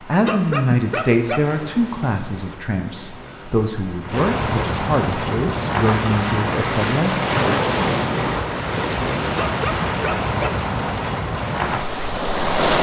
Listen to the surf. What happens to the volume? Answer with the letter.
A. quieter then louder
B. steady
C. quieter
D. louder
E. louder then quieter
D.